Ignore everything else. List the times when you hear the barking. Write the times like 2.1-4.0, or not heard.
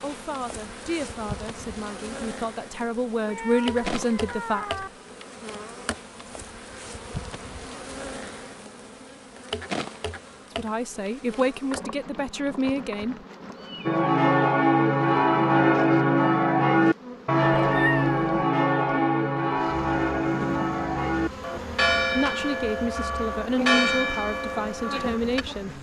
not heard.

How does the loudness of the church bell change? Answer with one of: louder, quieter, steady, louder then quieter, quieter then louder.
quieter.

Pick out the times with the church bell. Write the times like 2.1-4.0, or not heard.
13.8-25.4.